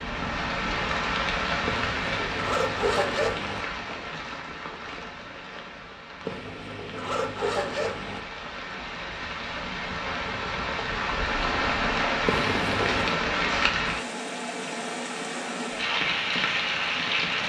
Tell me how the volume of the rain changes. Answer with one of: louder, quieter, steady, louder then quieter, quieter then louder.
quieter then louder.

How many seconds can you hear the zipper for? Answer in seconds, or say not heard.
5 s.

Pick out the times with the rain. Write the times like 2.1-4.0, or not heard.
0.0-17.4.